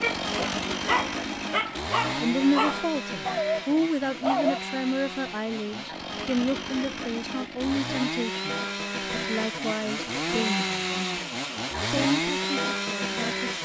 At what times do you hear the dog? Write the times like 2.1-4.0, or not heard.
0.0-4.6.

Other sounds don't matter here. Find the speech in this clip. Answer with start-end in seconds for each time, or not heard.
2.2-13.4.